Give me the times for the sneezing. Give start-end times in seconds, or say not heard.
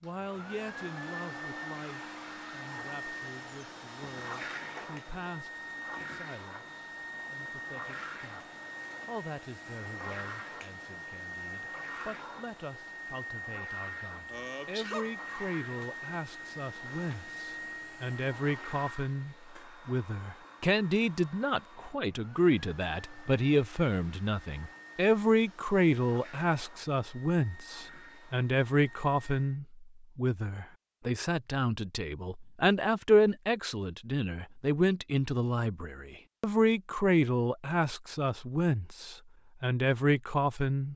14.3-15.2.